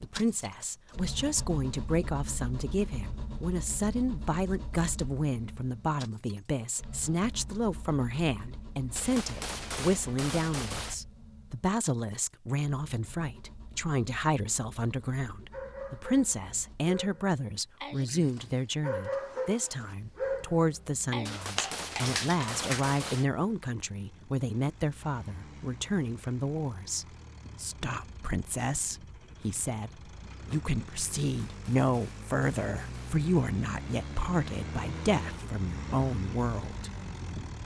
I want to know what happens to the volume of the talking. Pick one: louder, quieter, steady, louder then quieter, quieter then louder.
steady.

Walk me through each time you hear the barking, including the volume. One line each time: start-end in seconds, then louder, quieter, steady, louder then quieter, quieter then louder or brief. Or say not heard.
15.5-22.9 louder.